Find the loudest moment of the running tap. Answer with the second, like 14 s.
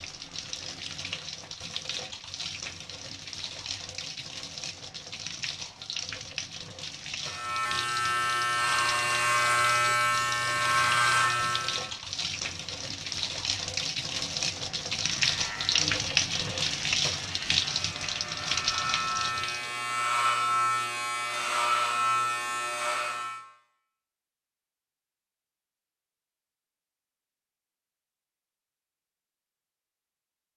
16 s.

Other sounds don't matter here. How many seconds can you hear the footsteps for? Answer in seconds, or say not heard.
not heard.